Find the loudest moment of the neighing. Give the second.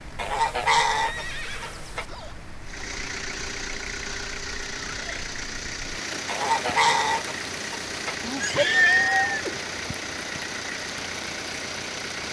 9 s.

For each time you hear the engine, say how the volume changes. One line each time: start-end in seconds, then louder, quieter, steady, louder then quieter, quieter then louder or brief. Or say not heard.
2.6-12.2 steady.